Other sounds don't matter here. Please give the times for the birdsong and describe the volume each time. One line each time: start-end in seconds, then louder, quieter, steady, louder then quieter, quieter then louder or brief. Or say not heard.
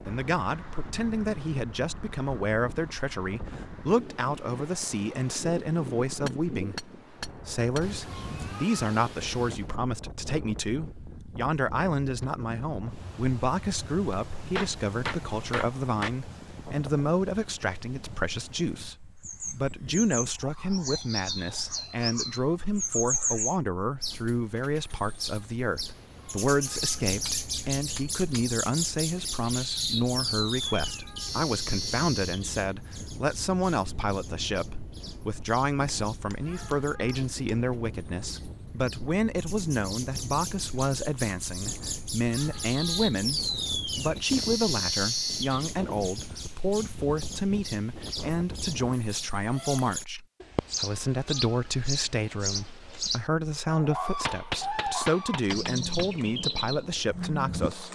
19.2-57.9 quieter then louder.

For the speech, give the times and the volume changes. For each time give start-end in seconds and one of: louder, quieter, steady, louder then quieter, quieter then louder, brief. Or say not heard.
0.1-57.9 steady.